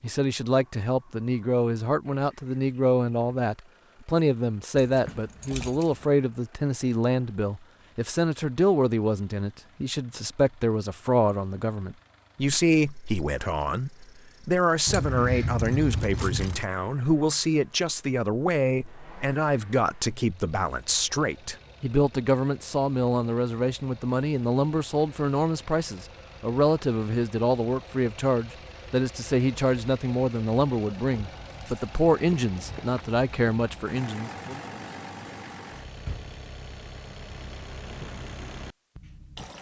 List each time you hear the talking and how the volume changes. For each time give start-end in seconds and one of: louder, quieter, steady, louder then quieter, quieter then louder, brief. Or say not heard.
0.0-34.6 steady.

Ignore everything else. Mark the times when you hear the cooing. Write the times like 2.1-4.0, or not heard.
not heard.